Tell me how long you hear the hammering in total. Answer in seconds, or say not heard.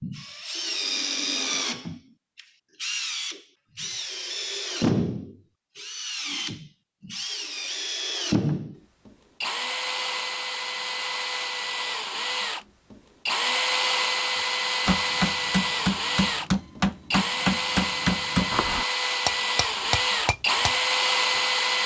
7 s.